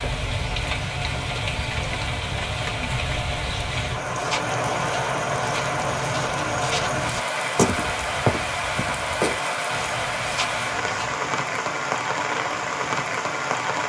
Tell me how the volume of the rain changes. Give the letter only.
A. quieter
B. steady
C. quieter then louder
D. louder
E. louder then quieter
B.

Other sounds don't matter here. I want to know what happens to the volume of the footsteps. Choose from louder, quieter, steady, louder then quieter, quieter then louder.
louder then quieter.